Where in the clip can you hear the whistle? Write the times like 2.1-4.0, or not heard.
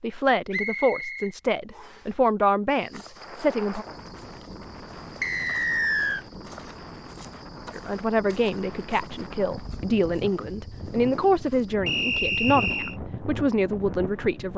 0.5-2.0, 5.2-6.2, 11.8-12.9.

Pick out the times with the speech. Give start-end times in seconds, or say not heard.
0.0-3.9, 7.8-14.5.